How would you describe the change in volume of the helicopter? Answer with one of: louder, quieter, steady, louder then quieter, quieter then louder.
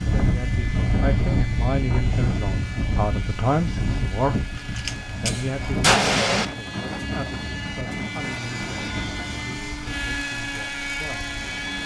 louder.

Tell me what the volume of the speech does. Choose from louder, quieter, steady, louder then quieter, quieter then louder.
quieter.